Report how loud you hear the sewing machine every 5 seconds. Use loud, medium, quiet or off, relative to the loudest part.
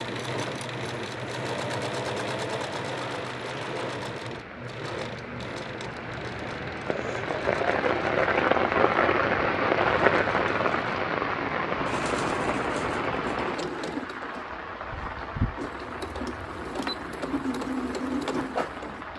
loud, medium, medium, loud.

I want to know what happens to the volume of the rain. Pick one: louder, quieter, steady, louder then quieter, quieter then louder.
louder then quieter.